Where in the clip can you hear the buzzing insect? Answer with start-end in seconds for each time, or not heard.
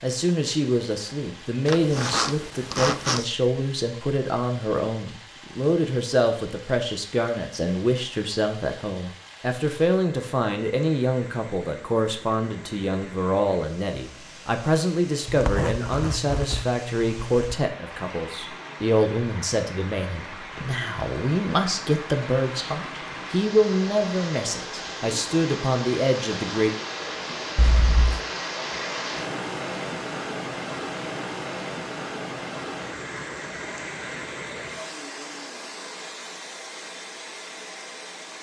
not heard.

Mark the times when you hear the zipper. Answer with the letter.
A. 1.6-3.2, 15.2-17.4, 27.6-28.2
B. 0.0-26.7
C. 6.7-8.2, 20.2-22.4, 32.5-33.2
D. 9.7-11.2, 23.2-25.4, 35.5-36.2
A.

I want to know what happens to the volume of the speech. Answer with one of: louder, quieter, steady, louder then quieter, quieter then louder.
steady.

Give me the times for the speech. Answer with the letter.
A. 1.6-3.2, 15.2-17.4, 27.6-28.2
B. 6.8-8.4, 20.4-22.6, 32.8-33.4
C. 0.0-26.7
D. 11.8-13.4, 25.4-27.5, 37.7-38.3
C.